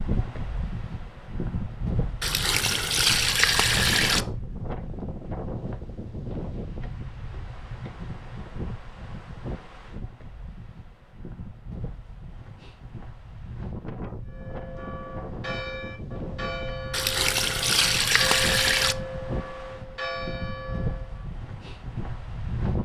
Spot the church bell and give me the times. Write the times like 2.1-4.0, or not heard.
14.3-21.2.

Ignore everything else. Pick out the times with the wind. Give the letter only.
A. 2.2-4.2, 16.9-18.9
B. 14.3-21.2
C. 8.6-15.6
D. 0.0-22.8
D.